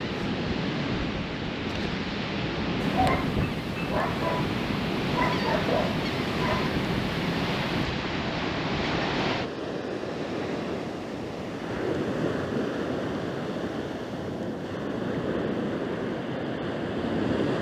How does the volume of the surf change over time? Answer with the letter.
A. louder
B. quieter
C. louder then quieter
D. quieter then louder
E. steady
E.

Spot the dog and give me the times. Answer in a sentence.
The dog can be heard from 2.8 to 7.8 s.